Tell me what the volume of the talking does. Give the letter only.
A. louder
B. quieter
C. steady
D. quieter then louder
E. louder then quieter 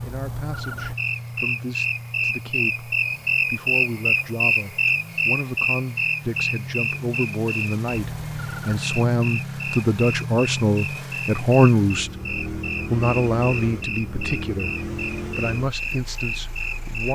E.